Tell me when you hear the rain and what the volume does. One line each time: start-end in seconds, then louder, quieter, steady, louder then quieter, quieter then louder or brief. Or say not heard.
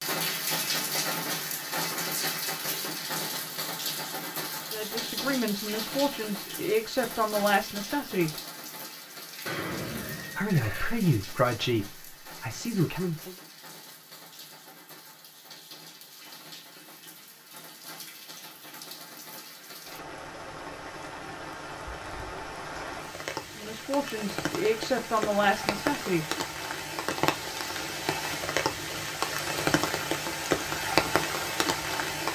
0.0-32.3 quieter then louder.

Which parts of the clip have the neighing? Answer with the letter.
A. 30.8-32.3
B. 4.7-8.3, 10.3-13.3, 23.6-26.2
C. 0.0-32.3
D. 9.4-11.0
D.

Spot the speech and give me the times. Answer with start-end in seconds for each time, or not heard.
4.7-8.3, 10.3-13.3, 23.6-26.2.